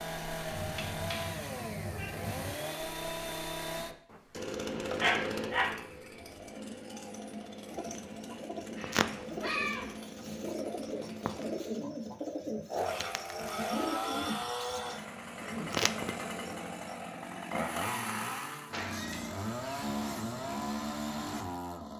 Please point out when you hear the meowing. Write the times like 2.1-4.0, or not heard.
0.5-2.5, 8.8-9.9, 18.7-20.6.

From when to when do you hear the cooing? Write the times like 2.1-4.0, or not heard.
7.7-16.8.